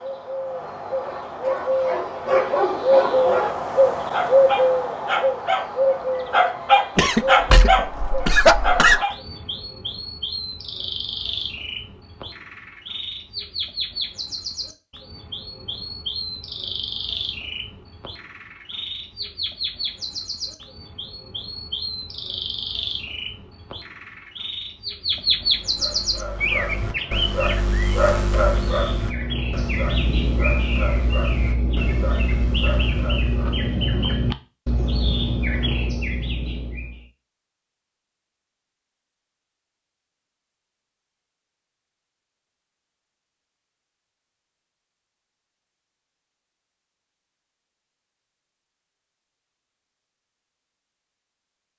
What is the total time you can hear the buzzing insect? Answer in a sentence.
You can't hear the buzzing insect here.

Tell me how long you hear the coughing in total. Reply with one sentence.
You can hear the coughing for 2 seconds altogether.